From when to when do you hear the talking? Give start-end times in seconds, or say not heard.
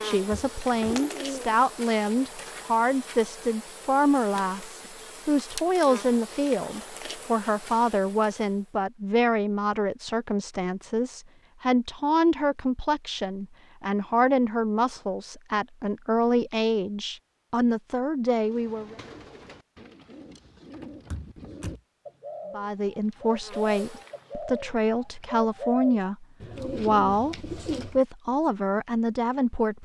0.0-18.9, 22.5-29.8.